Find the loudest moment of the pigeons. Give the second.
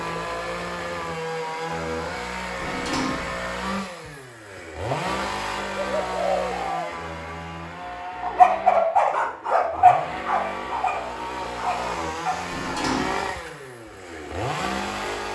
6 s.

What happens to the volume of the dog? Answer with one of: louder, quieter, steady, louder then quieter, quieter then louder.
quieter.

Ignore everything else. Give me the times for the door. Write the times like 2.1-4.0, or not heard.
2.5-3.5, 12.5-13.2.